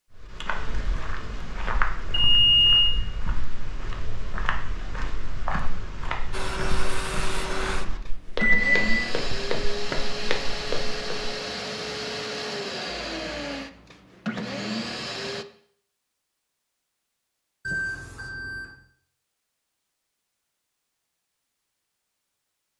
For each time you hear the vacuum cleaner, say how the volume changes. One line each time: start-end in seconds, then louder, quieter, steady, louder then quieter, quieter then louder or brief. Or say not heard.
6.3-15.4 steady.